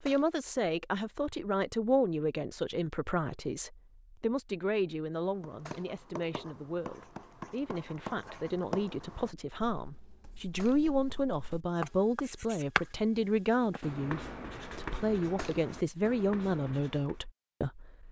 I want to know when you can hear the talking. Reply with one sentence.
The talking can be heard from 0.0 to 18.0 s.